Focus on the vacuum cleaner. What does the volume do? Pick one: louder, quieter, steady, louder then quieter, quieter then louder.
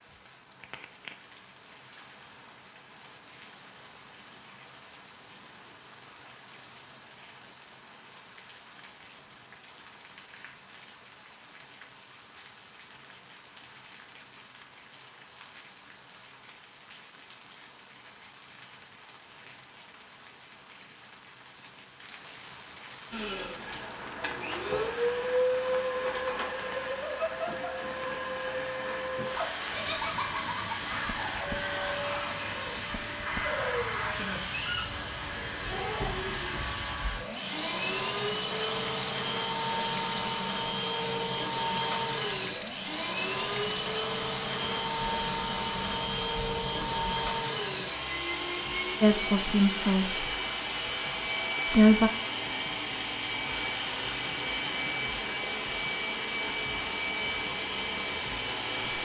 steady.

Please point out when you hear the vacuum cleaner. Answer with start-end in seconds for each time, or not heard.
23.1-59.0.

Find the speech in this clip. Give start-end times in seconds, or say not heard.
49.0-50.2, 51.6-52.1.